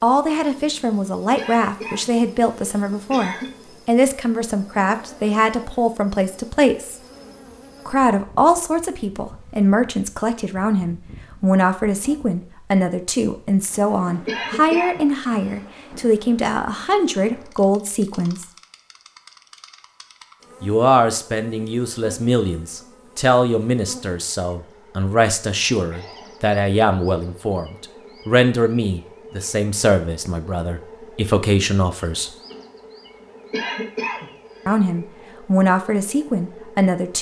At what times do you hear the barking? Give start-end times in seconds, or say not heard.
not heard.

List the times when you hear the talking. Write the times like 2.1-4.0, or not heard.
0.0-7.0, 7.8-18.4, 20.6-32.3, 34.6-37.1.